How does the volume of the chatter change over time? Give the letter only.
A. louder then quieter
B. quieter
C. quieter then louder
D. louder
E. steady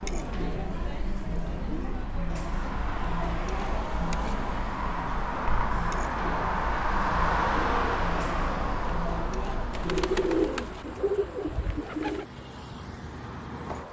E.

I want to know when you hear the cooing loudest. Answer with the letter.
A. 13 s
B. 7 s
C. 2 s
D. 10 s
D.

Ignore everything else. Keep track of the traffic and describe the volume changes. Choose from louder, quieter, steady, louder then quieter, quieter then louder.
louder then quieter.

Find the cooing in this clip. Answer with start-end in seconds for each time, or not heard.
9.7-12.2.